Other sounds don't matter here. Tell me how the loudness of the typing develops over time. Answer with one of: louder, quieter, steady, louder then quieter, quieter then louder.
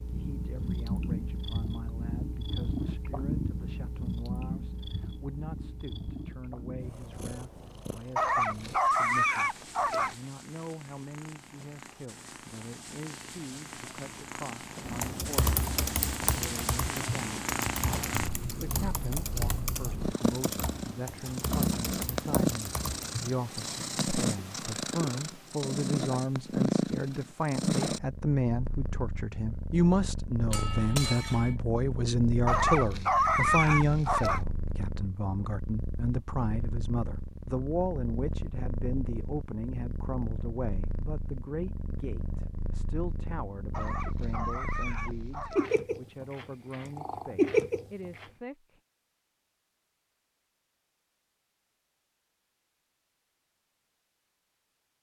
quieter.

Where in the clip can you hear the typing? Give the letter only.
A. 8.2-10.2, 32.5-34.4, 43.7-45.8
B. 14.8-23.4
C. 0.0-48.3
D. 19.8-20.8
B.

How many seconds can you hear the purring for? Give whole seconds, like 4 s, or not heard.
48 s.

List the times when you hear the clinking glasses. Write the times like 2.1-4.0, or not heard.
30.5-31.6.